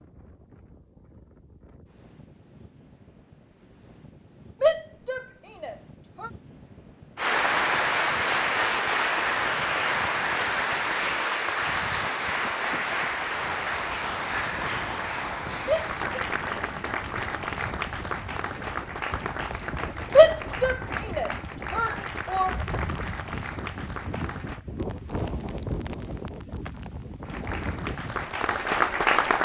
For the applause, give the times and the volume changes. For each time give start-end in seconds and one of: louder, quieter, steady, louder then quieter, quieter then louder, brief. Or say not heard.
7.2-24.6 quieter
27.2-29.3 brief.